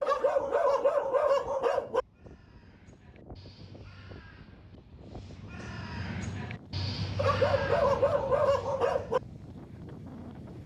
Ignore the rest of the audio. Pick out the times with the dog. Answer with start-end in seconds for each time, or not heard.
0.0-2.0, 7.2-9.2.